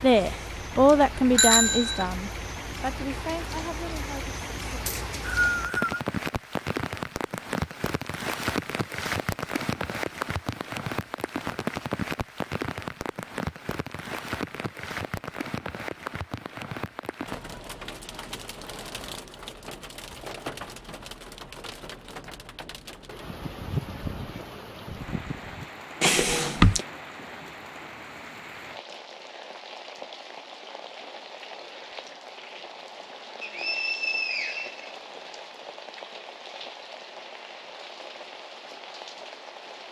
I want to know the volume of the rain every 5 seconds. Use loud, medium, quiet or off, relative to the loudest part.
medium, loud, loud, medium, medium, medium, medium, medium.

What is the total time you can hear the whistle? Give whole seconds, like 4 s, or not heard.
3 s.